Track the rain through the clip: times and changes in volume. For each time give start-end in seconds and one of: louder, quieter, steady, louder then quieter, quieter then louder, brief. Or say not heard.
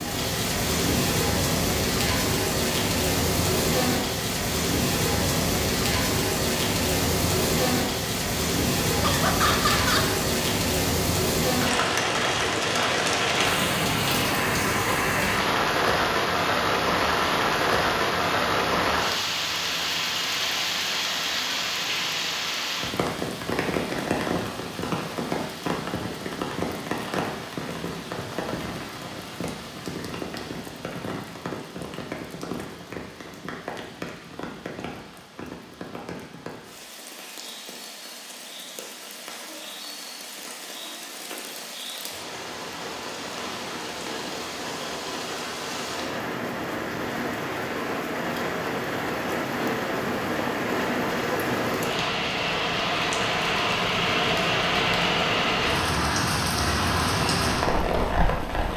0.0-58.7 quieter then louder.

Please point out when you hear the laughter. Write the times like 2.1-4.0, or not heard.
9.0-10.2.